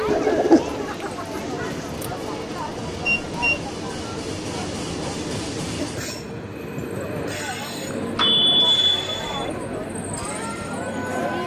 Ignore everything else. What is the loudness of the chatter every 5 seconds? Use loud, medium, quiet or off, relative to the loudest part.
loud, medium, loud.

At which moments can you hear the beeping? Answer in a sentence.
The beeping can be heard from 3.0 to 3.6 s and from 8.2 to 9.2 s.